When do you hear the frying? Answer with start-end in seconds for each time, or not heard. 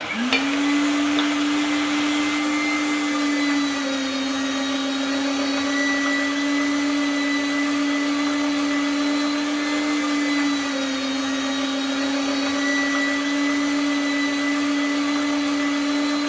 0.0-2.4.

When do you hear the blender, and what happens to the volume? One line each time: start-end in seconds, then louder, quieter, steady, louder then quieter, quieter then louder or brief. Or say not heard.
0.0-16.2 steady.